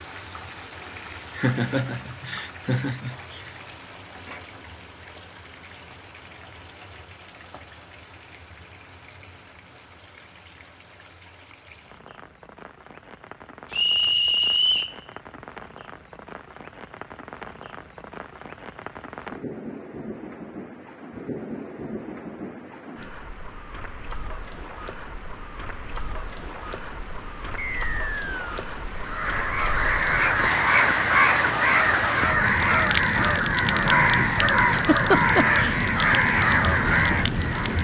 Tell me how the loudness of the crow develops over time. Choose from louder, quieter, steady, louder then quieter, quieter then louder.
steady.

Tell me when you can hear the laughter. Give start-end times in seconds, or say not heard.
1.4-3.5, 34.7-35.8.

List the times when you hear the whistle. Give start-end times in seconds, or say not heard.
13.7-14.9, 27.6-28.6.